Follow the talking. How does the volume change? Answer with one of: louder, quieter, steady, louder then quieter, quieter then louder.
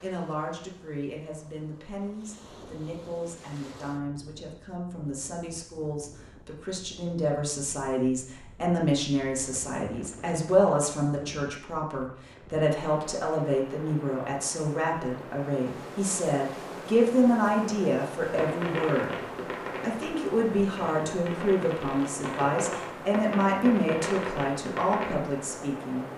louder.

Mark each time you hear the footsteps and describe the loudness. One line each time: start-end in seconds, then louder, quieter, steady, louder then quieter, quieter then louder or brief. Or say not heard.
not heard.